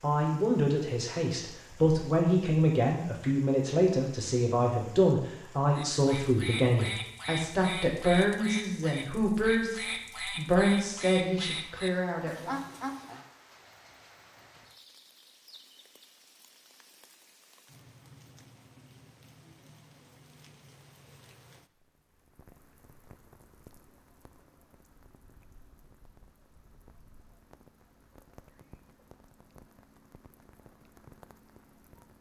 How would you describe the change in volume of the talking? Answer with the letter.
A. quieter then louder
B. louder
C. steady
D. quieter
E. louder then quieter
C.